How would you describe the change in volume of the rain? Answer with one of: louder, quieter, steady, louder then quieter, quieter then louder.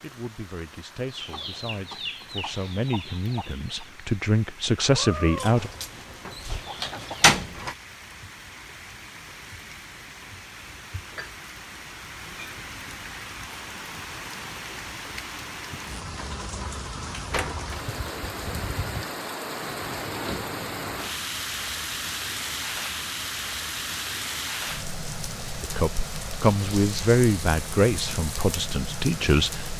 louder.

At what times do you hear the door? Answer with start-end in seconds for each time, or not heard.
5.3-7.8, 17.3-17.9.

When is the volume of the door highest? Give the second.
7 s.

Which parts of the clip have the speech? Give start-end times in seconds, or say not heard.
0.0-5.7, 25.6-29.7.